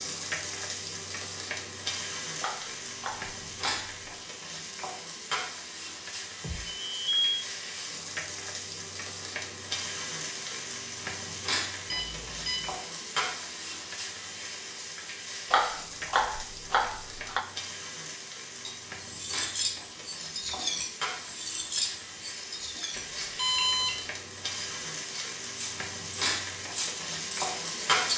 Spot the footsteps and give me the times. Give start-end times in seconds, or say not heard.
not heard.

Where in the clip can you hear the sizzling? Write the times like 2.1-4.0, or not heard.
0.0-28.1.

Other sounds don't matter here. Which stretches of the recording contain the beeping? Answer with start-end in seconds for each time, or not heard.
6.4-7.3, 11.8-12.7, 22.9-23.9.